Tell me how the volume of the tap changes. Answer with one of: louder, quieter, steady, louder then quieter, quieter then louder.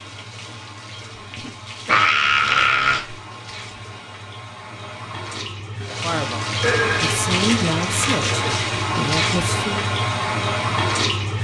louder.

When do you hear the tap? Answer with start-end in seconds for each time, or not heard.
0.0-11.3.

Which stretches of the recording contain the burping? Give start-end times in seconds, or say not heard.
1.3-3.1, 6.6-8.6.